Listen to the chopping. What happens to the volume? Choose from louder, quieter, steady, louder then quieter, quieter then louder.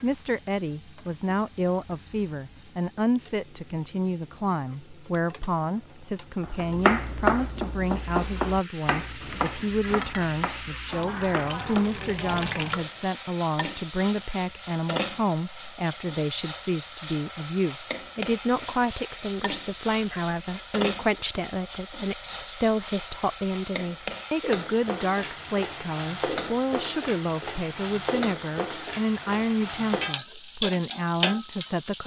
quieter.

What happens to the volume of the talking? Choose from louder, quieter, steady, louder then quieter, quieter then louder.
steady.